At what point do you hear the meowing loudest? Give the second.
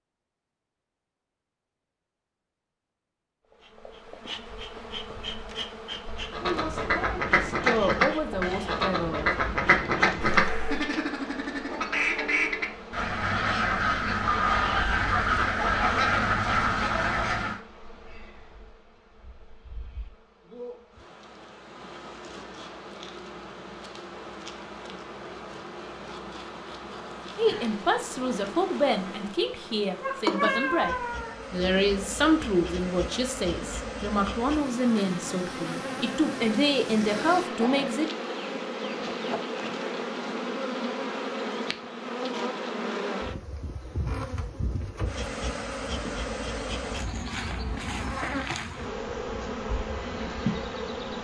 31 s.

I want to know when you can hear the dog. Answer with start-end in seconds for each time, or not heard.
not heard.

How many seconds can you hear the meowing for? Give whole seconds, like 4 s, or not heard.
2 s.